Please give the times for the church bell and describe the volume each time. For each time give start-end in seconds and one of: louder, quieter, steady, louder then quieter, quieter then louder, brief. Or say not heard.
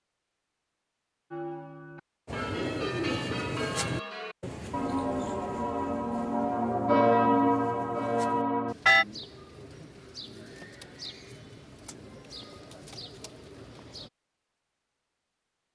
1.3-9.1 louder.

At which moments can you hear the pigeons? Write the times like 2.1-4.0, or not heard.
2.2-14.1.